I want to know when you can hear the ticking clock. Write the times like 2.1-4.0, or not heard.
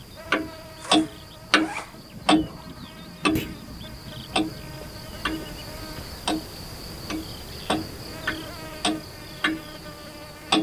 0.2-5.5, 6.2-10.5.